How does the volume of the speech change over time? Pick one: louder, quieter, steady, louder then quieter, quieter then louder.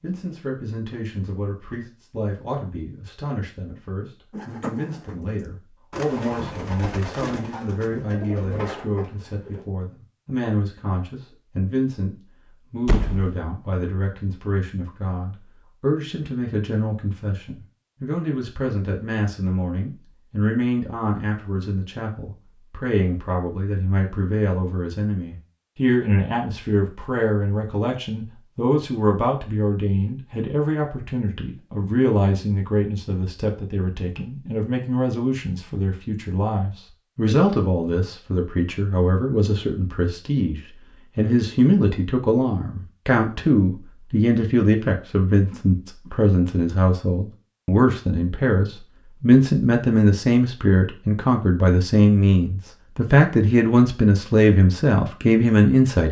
louder.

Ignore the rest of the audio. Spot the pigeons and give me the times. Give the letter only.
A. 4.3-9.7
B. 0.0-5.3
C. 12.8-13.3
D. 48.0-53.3
A.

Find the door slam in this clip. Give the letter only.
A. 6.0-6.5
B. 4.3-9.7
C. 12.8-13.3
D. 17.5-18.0
C.